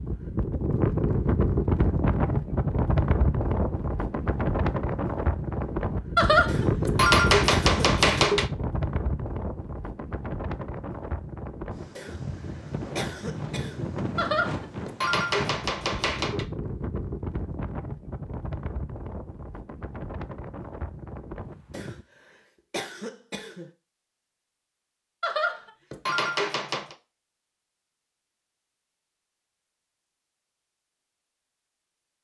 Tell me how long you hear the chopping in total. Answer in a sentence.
You can hear the chopping for 6 seconds altogether.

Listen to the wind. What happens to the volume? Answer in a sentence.
The loudness of the wind goes down.